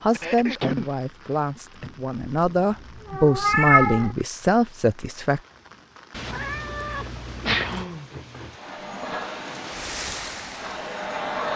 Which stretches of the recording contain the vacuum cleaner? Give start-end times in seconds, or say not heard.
8.6-11.5.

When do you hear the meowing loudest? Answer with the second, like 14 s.
4 s.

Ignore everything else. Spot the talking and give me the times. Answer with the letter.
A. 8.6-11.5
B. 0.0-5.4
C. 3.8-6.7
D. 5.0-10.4
B.